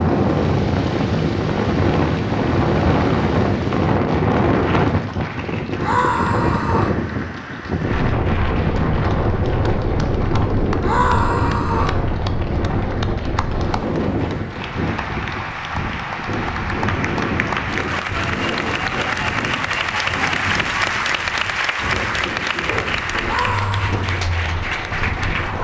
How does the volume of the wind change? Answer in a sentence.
The loudness of the wind goes down.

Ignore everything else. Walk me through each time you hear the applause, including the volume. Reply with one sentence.
You can hear the applause from 0.0 to 25.5 s, getting louder.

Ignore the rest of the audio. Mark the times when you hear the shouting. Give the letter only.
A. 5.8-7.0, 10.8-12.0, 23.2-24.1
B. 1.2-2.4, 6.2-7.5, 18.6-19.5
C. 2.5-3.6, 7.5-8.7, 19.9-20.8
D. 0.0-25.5
A.